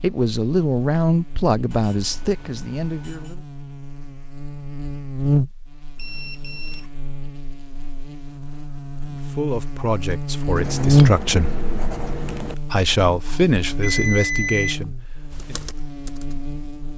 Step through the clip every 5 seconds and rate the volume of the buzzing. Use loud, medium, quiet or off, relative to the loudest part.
quiet, medium, loud, quiet.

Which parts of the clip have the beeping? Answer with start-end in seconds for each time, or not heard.
1.7-3.4, 6.0-6.9, 13.2-14.8.